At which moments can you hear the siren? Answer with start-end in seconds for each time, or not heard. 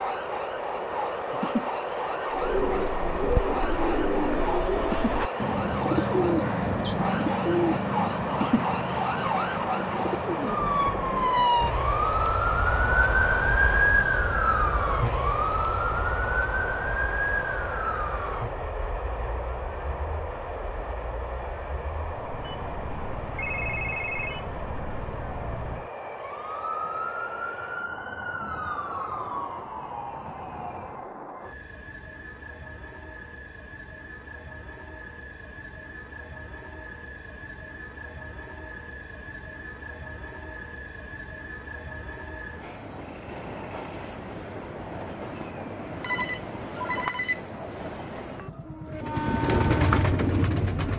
0.0-31.1.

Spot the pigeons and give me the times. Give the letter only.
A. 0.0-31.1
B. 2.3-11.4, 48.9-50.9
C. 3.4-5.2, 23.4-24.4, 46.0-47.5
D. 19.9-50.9
B.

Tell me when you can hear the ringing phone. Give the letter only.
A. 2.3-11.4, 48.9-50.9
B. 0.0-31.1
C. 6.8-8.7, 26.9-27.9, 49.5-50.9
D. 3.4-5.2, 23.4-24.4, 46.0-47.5
D.